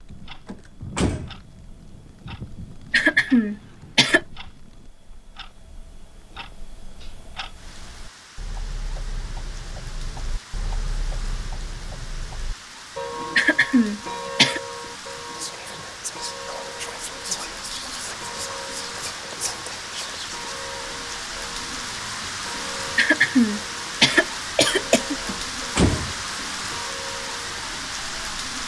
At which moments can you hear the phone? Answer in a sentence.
The phone can't be heard in this clip.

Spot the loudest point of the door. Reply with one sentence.
The loudest moment of the door is at 26 seconds.